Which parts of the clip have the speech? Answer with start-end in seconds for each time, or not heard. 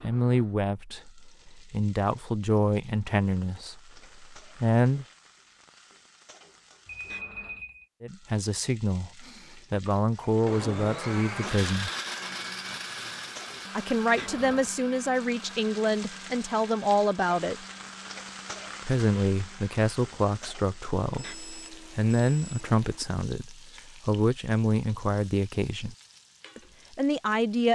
0.0-5.0, 8.0-11.9, 13.8-17.6, 18.9-25.9, 26.6-27.6.